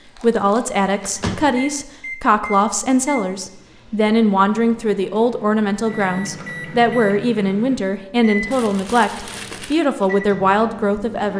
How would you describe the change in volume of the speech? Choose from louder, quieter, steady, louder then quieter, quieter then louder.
steady.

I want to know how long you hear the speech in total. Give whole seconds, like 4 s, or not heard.
11 s.